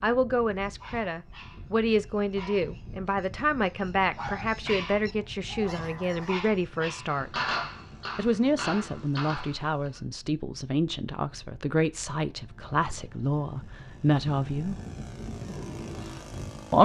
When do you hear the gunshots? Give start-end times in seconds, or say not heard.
7.0-10.0.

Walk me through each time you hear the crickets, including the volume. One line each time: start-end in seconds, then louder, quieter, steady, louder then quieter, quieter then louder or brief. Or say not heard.
not heard.